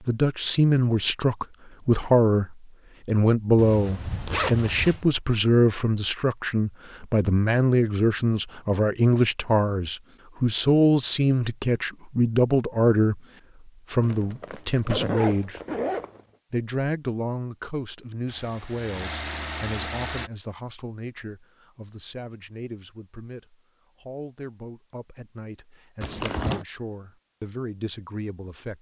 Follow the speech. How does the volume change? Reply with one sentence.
The loudness of the speech goes down.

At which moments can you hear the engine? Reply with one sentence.
You can hear the engine from 18.2 to 20.3 s.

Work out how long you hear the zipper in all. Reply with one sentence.
The zipper can be heard for 4 seconds in total.